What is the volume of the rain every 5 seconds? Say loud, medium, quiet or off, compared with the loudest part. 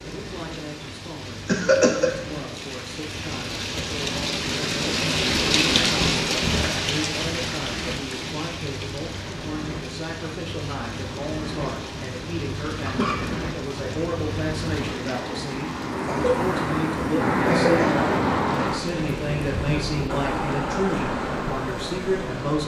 medium, loud, quiet, quiet, quiet.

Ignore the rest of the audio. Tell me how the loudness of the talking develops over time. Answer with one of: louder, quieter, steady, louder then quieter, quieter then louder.
louder.